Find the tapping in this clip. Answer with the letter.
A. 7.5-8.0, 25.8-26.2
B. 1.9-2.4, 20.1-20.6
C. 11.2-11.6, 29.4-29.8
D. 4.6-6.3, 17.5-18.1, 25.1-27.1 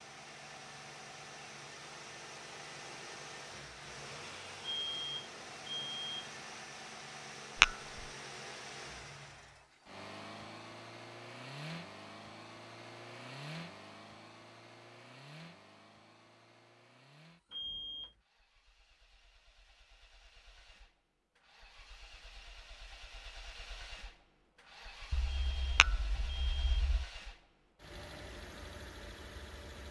A.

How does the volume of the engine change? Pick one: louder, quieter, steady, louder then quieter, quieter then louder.
quieter then louder.